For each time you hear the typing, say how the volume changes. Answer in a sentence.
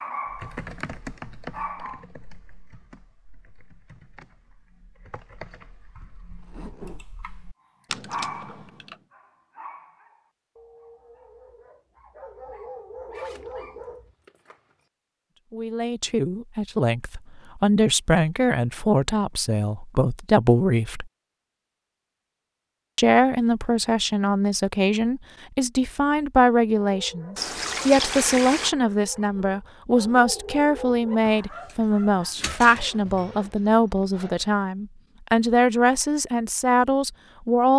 The typing can be heard from 0.2 to 8.9 s, getting quieter then louder.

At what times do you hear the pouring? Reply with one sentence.
The pouring can be heard from 27.4 to 28.8 s.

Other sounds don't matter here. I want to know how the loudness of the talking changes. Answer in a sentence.
The volume of the talking stays about the same.